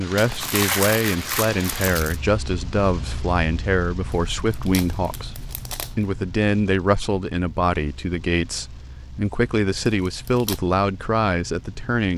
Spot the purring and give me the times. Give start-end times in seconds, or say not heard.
not heard.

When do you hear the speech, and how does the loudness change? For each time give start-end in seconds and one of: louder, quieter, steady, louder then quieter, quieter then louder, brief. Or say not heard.
0.0-12.1 steady.